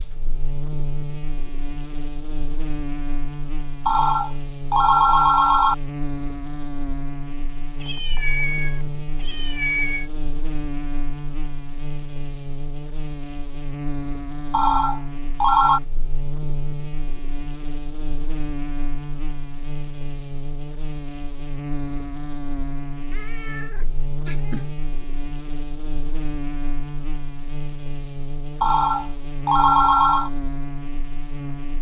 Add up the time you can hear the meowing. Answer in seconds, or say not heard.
4 s.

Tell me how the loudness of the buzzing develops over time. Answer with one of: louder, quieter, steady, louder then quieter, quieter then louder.
steady.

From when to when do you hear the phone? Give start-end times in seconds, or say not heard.
3.9-5.8, 14.5-15.8, 28.6-30.3.